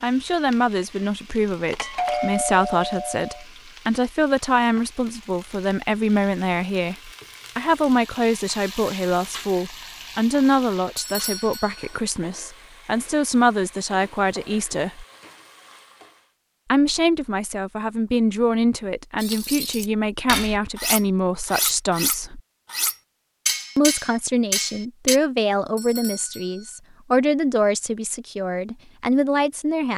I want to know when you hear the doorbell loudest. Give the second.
2 s.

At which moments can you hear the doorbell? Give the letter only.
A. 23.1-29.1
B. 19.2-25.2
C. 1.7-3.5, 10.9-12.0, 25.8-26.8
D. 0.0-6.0
C.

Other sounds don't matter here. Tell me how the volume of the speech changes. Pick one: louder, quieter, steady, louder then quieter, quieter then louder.
steady.